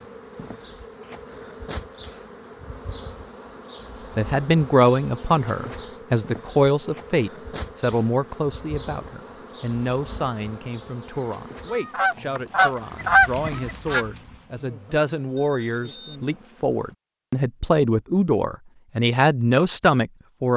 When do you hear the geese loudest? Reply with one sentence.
The volume of the geese peaks at 13 seconds.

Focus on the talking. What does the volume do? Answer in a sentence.
The volume of the talking goes down, then up.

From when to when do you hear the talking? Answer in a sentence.
The talking can be heard from 4.2 to 20.5 s.